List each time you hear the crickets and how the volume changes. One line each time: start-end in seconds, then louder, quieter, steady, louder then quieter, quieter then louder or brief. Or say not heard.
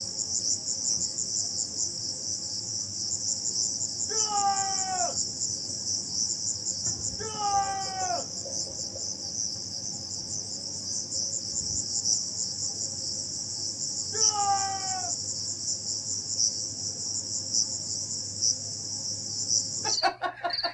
0.0-20.6 steady.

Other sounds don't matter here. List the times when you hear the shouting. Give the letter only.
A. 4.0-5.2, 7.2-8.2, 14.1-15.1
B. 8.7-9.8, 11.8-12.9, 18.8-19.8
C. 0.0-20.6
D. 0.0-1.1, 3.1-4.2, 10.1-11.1
A.